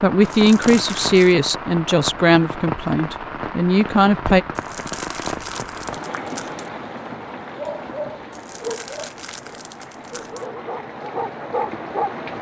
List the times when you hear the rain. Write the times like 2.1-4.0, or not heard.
0.0-12.3.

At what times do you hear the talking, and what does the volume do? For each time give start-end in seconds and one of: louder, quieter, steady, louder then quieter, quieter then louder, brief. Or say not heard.
0.0-4.5 quieter then louder.